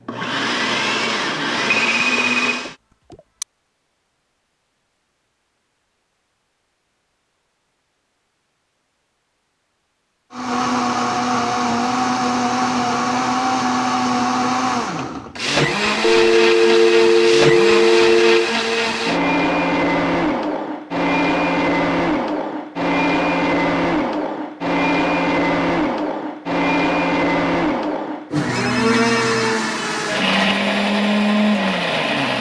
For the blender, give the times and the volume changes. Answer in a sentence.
The blender can be heard briefly from 0.1 to 2.8 s; and from 10.3 to 32.3 s, at a steady volume.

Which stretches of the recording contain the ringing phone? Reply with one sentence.
You can hear the ringing phone from 1.9 to 3.5 s, from 16.0 to 18.5 s and from 28.4 to 29.6 s.